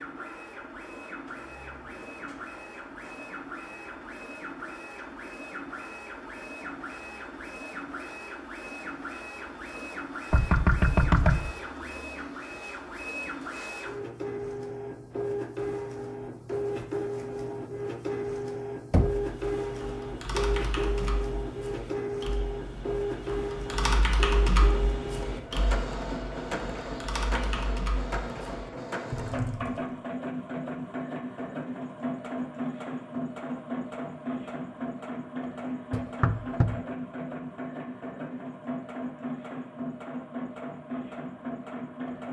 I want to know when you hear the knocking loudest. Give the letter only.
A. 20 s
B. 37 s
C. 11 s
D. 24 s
C.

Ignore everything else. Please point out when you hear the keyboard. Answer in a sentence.
You can hear the keyboard from 19.1 to 29.9 s.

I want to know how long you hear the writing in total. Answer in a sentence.
You can't hear the writing here.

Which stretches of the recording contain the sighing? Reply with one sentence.
The sighing can't be heard in this clip.